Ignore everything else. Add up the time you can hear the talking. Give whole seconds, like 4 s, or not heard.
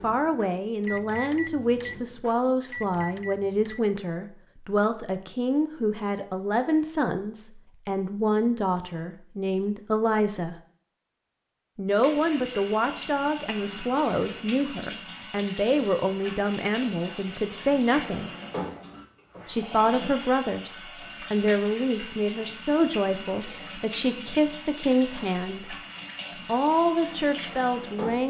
25 s.